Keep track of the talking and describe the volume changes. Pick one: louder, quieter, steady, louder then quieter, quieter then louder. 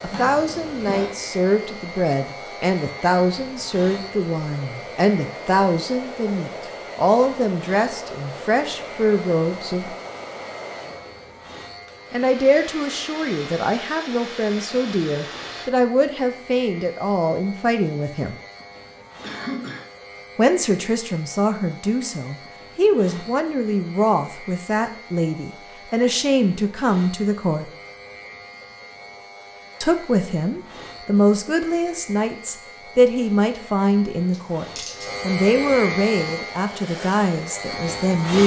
steady.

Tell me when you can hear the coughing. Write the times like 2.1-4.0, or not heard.
0.1-1.1, 19.2-19.9, 34.3-35.0.